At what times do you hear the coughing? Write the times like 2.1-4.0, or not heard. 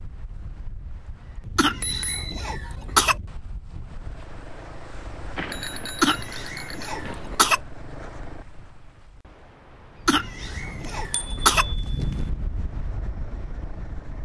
1.6-3.1, 6.0-7.6, 10.1-11.7.